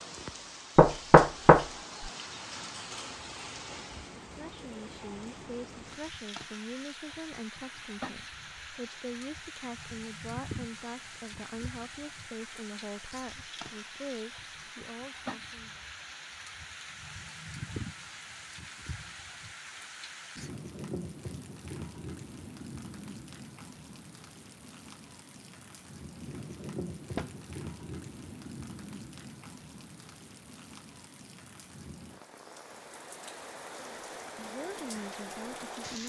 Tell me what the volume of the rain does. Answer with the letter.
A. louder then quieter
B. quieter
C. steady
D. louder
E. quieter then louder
C.